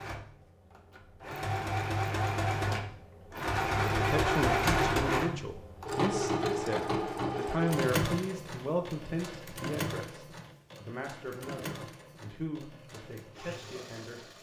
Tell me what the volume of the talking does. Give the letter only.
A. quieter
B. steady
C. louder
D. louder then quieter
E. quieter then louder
A.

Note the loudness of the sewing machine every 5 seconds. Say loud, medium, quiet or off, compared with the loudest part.
loud, loud, quiet.